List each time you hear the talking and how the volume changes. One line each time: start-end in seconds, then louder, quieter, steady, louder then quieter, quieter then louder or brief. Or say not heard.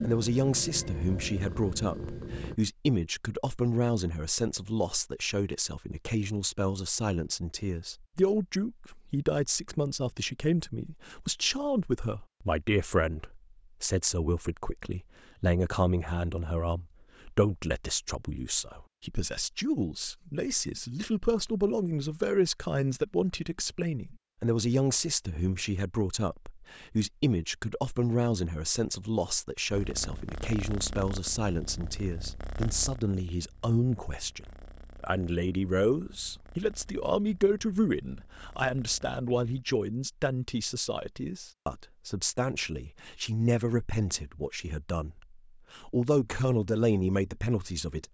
0.0-48.0 steady.